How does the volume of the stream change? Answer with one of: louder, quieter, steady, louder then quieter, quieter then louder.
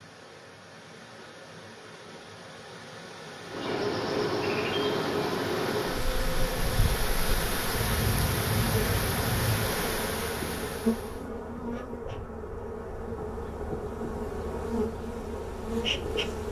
louder.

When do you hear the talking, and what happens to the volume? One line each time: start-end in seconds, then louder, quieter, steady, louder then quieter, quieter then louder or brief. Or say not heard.
not heard.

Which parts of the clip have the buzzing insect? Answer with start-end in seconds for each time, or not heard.
3.5-16.4.